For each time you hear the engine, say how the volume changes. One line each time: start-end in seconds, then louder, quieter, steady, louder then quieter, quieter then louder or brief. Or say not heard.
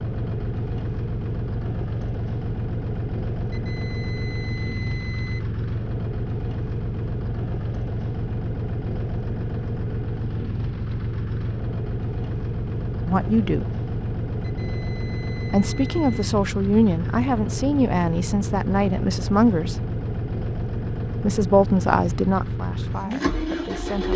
0.0-24.1 steady.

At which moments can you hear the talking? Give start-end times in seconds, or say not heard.
13.1-13.7, 15.5-19.8, 21.2-24.1.